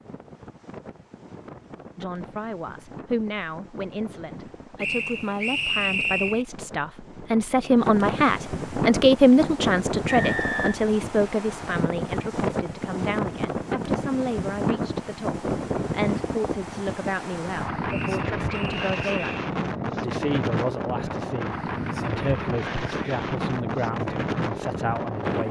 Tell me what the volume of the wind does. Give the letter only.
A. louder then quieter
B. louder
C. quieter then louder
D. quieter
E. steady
B.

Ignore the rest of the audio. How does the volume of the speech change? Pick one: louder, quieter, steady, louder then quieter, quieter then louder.
louder then quieter.